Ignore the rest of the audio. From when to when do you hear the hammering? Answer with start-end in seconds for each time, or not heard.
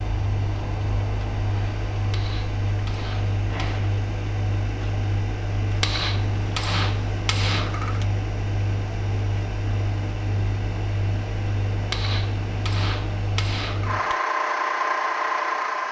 2.1-3.8, 5.8-8.1, 11.9-14.2.